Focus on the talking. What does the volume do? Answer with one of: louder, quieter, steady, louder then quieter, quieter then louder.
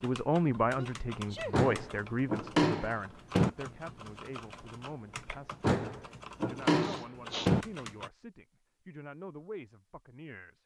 quieter.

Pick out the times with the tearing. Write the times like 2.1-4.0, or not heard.
not heard.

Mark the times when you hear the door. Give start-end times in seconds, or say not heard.
1.5-3.5, 5.6-7.7.